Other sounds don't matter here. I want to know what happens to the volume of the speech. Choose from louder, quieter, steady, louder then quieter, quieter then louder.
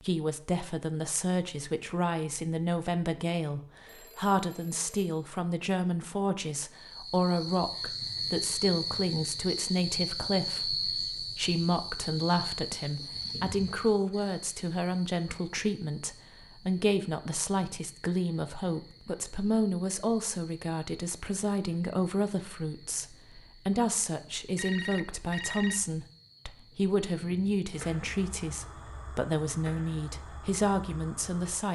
steady.